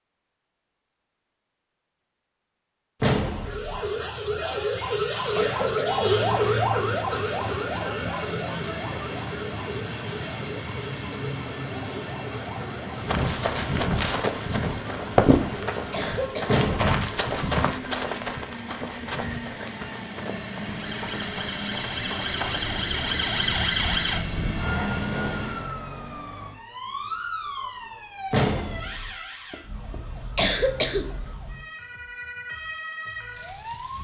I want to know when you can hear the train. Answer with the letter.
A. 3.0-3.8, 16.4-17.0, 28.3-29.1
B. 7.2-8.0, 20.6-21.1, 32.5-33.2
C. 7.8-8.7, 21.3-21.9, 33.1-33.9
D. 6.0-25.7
D.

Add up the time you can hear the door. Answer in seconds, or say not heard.
2 s.